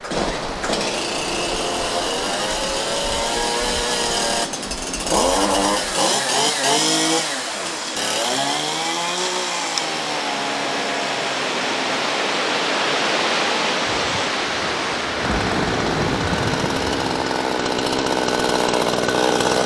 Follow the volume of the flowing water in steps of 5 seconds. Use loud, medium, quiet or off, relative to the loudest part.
medium, medium, loud, medium.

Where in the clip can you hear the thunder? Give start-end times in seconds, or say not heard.
13.8-17.2.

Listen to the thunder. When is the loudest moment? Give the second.
16 s.